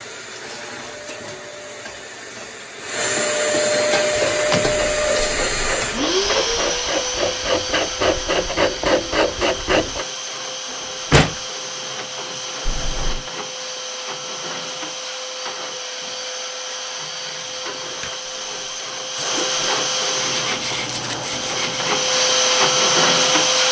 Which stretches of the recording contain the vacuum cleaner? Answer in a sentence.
The vacuum cleaner can be heard from 0.0 to 23.6 s.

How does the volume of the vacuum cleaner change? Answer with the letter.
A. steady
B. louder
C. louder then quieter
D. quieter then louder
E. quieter
D.